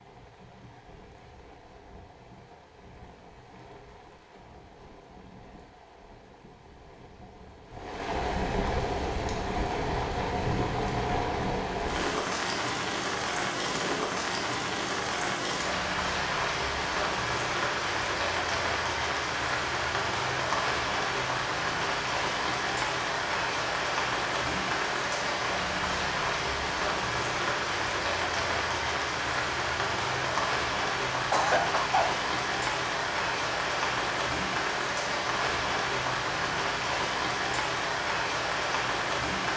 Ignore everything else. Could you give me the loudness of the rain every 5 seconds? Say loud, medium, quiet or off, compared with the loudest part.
quiet, medium, loud, loud, loud, loud, loud, loud.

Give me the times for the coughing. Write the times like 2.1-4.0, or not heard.
31.3-32.2.